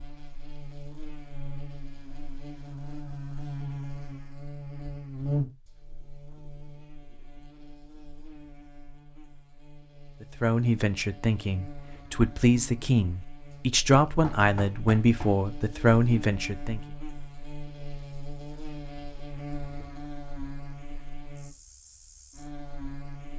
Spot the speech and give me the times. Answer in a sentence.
You can hear the speech from 10.2 to 16.8 s.